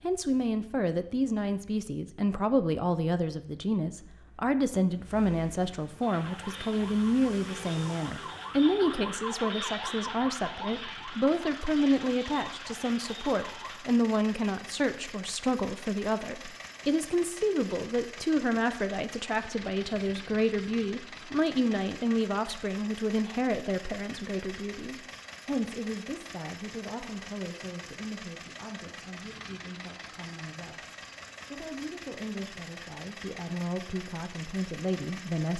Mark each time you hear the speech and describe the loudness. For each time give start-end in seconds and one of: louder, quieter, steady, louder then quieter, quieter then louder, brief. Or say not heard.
0.0-35.5 quieter.